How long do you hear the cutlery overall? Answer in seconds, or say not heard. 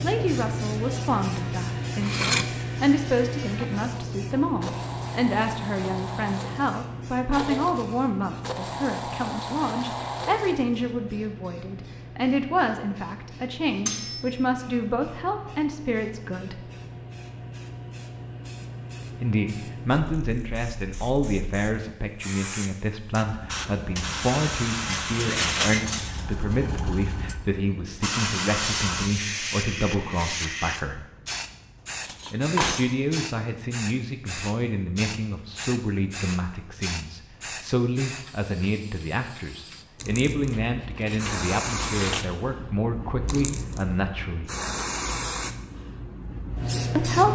6 s.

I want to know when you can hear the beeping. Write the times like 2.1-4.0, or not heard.
not heard.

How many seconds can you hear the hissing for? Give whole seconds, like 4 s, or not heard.
47 s.